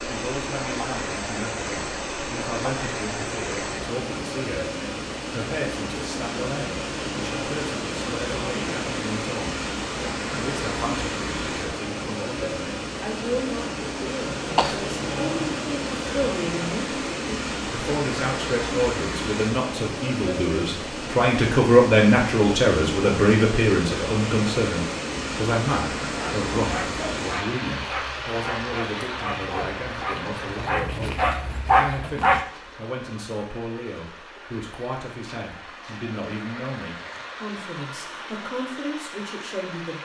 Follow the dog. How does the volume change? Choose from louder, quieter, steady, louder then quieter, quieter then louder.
louder.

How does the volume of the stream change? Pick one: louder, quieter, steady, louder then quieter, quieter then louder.
quieter.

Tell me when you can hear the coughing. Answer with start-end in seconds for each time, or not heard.
14.4-15.6.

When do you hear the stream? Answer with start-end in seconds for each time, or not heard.
0.0-40.0.